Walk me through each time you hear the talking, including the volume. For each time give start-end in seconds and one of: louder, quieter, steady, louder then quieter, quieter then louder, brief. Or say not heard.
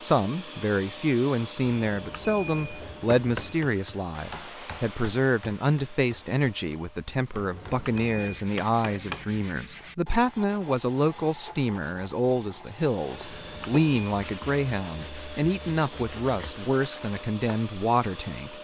0.0-18.5 steady.